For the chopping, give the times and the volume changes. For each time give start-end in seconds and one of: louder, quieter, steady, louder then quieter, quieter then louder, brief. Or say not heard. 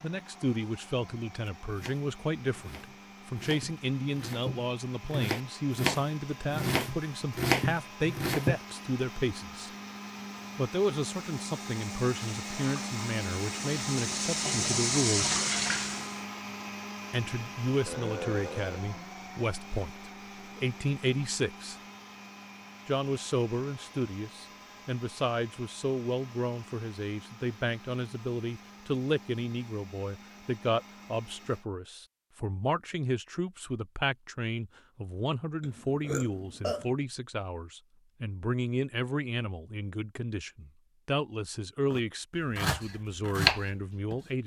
1.7-8.6 louder
41.9-44.3 brief.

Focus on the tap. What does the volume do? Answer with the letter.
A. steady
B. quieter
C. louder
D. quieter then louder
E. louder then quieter
C.